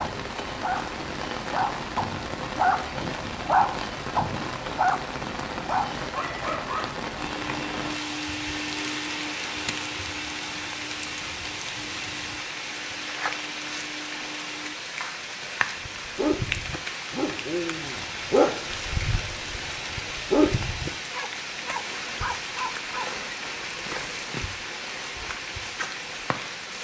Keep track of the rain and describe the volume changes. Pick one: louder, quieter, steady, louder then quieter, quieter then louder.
steady.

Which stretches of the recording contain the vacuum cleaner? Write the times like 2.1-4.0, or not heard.
7.2-14.8.